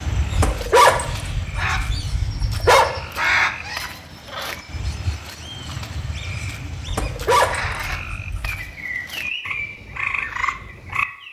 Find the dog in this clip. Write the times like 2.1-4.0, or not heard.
0.3-2.9, 6.8-8.7.